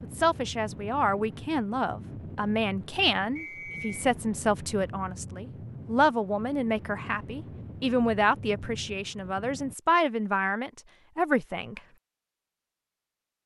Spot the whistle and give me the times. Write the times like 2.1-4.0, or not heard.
3.4-4.1.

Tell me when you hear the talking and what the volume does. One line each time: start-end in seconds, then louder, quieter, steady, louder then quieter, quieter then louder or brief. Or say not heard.
0.0-11.8 steady.